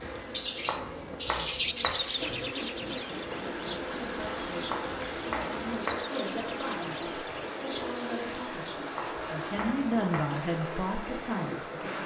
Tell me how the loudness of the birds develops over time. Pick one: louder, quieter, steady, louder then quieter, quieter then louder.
quieter.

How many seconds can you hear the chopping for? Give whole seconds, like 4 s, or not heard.
4 s.